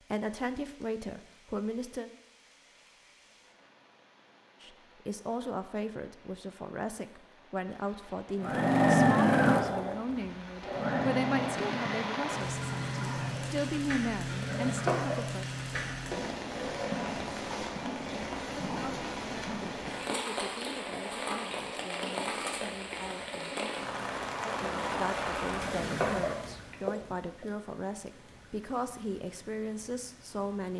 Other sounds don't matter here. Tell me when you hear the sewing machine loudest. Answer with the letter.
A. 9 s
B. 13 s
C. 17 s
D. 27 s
A.